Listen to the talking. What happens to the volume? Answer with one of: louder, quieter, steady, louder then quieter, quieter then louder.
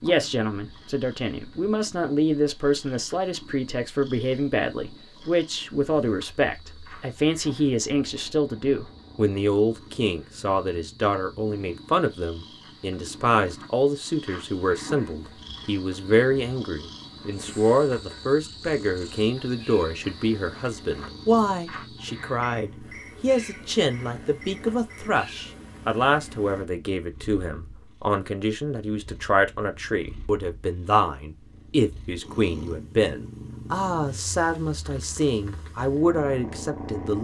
steady.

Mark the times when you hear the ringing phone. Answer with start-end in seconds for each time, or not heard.
not heard.